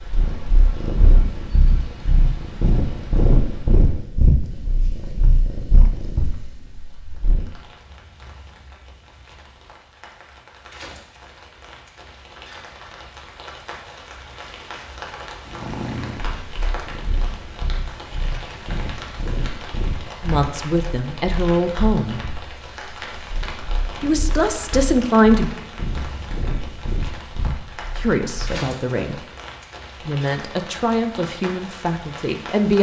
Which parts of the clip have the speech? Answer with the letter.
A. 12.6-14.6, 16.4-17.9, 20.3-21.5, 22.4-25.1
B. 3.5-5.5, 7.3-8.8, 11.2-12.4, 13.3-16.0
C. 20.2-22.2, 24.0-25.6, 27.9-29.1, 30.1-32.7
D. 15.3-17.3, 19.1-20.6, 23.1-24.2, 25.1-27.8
C.